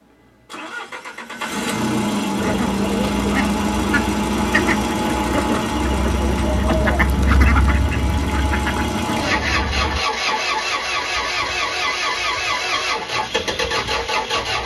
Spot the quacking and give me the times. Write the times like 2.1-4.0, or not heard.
2.4-10.3.